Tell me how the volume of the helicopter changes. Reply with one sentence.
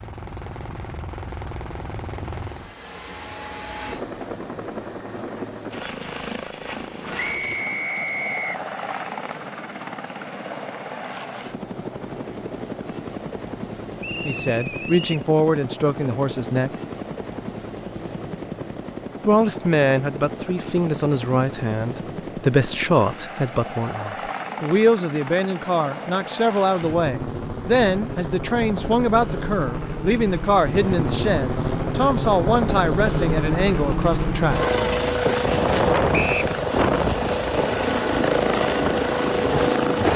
The loudness of the helicopter goes up.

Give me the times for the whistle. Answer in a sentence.
The whistle can be heard from 7.2 to 8.6 s, from 14.0 to 15.2 s and from 36.1 to 36.5 s.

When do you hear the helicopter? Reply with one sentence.
The helicopter can be heard from 0.0 to 40.1 s.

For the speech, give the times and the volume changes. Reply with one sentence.
The speech can be heard briefly from 14.2 to 16.7 s; and from 19.2 to 34.6 s, at a steady volume.